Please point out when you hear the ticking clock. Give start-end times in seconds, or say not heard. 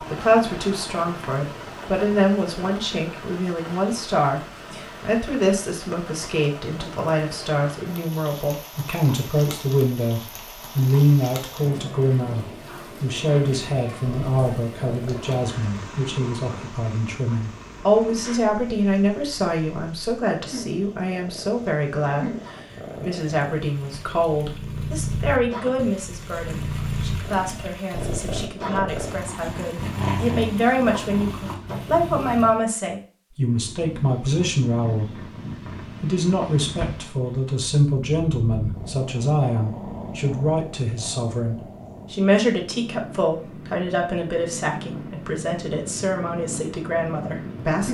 not heard.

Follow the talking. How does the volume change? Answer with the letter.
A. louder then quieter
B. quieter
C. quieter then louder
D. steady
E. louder
D.